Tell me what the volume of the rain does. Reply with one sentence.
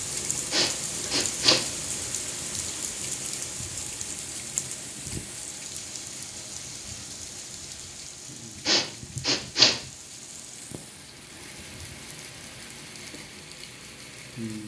The loudness of the rain goes down.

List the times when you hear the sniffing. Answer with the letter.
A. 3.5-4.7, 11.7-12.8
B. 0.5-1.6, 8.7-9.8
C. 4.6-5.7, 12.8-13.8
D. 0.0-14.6
B.